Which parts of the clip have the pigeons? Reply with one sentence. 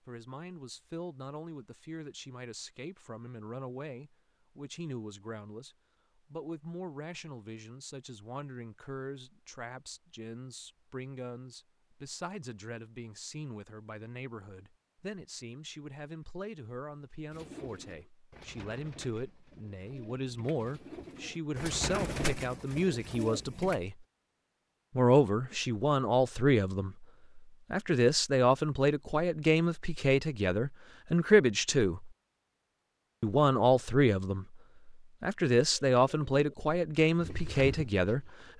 The pigeons can be heard from 17.3 to 23.8 s and from 35.6 to 38.5 s.